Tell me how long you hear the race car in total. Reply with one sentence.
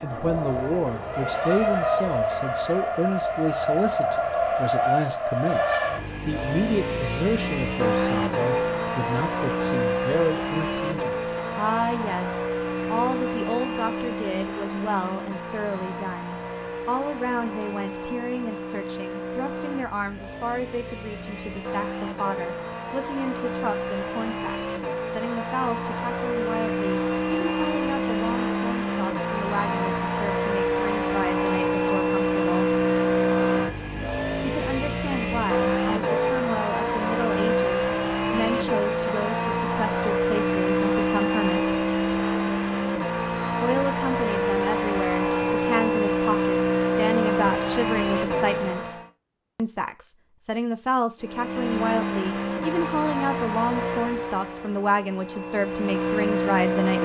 The race car can be heard for 55 seconds in total.